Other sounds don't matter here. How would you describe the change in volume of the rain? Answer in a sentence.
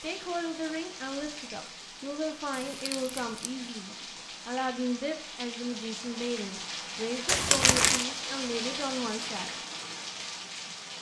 The loudness of the rain goes up.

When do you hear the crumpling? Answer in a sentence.
You can hear the crumpling from 2.5 to 3.6 s and from 7.2 to 8.1 s.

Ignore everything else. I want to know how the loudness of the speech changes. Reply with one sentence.
The volume of the speech stays about the same.